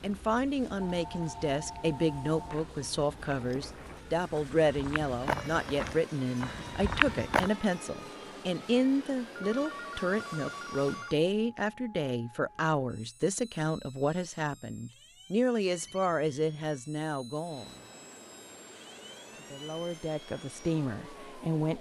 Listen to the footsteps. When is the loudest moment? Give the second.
7 s.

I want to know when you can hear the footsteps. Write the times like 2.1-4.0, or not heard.
2.3-7.5.